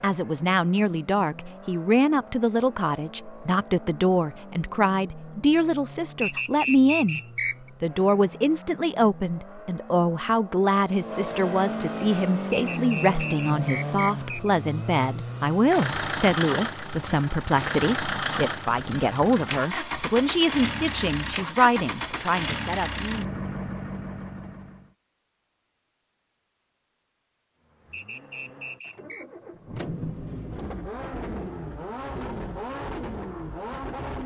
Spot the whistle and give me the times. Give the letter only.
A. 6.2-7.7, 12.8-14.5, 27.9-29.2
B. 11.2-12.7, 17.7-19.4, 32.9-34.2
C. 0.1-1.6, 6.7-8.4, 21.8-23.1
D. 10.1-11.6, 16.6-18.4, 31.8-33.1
A.